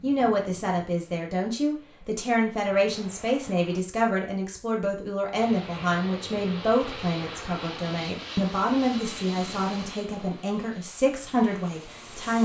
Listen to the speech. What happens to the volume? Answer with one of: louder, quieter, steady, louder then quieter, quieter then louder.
steady.